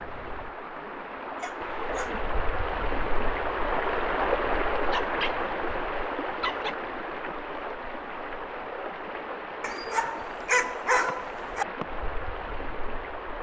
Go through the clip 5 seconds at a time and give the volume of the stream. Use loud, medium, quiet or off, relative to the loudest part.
loud, loud, medium.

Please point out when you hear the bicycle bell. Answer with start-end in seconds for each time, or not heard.
not heard.